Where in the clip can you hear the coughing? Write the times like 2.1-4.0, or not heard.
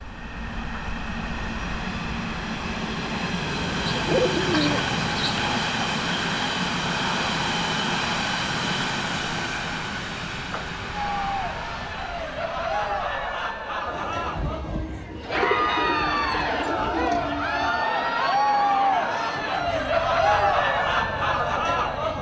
not heard.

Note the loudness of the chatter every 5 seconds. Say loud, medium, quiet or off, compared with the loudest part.
off, off, medium, loud, loud.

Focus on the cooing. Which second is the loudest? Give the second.
4 s.